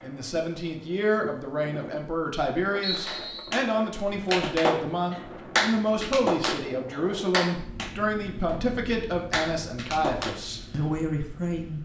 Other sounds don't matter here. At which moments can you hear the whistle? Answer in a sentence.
You can hear the whistle from 2.8 to 3.5 s.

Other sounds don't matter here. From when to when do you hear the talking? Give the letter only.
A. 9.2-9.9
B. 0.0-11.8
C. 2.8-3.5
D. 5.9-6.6
B.